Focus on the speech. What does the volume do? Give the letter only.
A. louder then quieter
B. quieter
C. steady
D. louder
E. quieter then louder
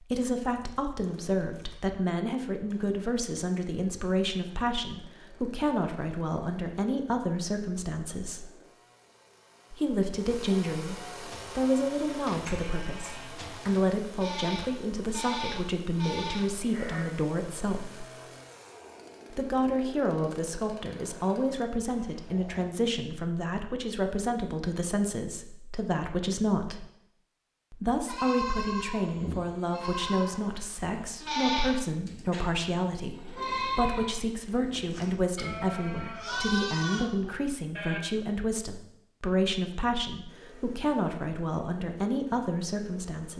C.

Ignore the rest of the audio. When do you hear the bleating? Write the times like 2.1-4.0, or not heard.
11.2-17.1, 28.1-38.0.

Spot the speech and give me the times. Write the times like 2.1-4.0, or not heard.
0.0-8.5, 9.7-18.1, 19.3-26.9, 27.7-43.3.